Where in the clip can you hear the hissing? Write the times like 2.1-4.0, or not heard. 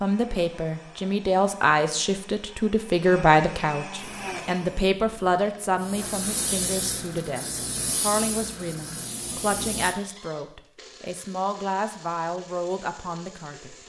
4.0-9.9.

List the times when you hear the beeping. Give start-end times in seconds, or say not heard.
not heard.